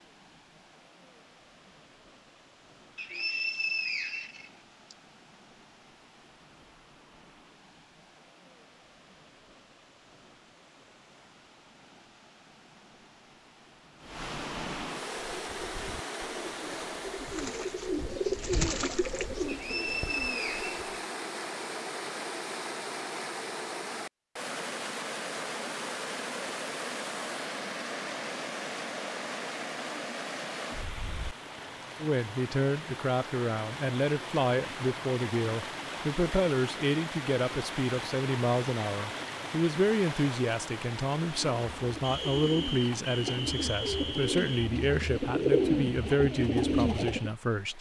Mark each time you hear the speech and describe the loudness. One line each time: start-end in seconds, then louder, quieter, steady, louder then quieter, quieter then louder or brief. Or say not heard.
32.0-47.7 steady.